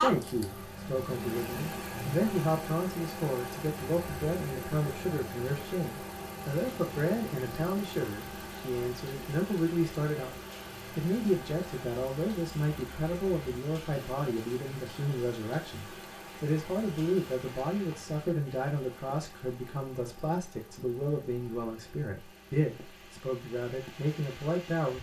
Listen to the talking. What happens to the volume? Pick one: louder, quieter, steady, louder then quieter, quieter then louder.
steady.